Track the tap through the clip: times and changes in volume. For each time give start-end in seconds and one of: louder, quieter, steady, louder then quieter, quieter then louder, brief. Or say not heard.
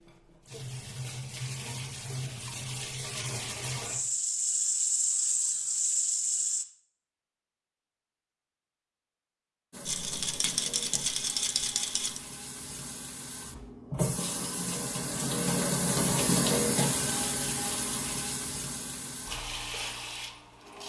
0.0-6.7 louder
9.7-20.8 louder then quieter.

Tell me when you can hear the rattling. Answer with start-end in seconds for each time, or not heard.
9.8-12.2.